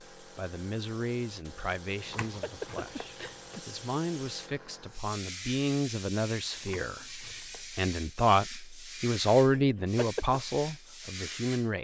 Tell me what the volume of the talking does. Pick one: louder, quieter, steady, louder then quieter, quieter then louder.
louder.